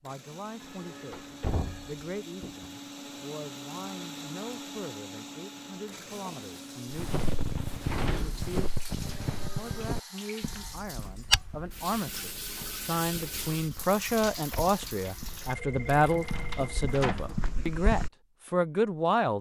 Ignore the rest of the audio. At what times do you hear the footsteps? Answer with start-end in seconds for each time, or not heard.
6.9-18.1.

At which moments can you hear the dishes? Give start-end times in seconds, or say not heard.
not heard.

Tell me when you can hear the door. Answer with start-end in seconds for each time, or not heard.
1.1-2.7, 7.0-8.5, 16.1-17.3.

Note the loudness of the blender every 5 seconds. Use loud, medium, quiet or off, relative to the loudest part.
loud, loud, off, off.